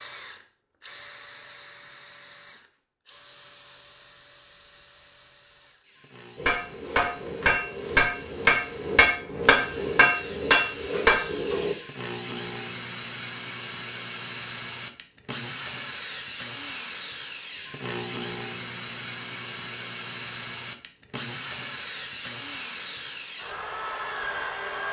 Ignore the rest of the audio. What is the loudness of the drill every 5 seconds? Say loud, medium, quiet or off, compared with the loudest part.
medium, quiet, loud, loud, loud.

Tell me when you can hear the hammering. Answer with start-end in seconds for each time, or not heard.
6.3-11.8.